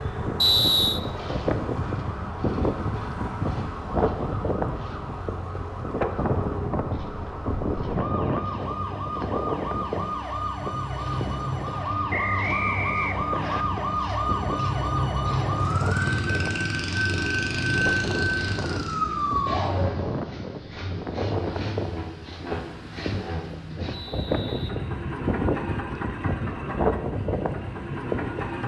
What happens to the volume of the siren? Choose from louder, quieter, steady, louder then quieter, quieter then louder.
louder.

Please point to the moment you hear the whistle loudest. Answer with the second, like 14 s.
1 s.